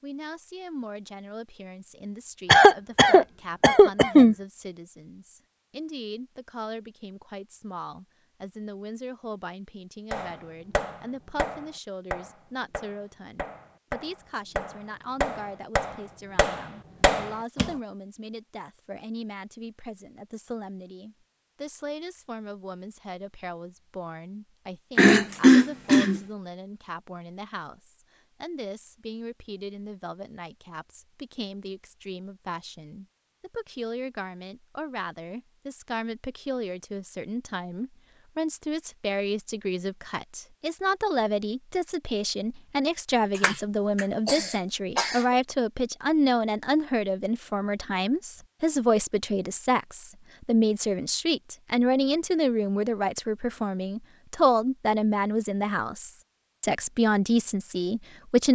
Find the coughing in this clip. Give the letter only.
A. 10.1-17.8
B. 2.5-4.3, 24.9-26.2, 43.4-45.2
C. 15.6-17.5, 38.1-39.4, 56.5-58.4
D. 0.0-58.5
B.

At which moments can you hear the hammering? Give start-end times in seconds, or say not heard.
10.1-17.8.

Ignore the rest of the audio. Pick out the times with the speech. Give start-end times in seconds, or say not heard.
0.0-58.5.